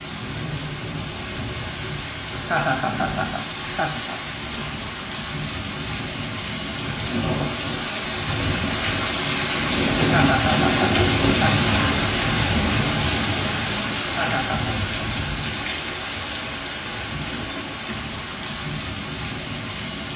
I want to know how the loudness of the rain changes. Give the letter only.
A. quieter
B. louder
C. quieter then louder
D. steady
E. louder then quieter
E.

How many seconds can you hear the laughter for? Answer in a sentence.
You can hear the laughter for 4 seconds altogether.